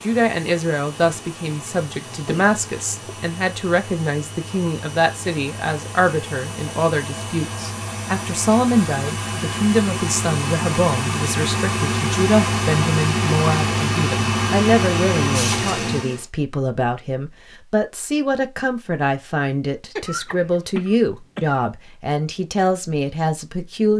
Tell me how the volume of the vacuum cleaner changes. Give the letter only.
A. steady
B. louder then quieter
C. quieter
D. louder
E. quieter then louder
D.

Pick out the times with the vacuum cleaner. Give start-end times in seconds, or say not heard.
0.0-16.2.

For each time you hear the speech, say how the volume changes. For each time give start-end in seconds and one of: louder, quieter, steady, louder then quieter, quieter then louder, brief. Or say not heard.
0.0-23.9 steady.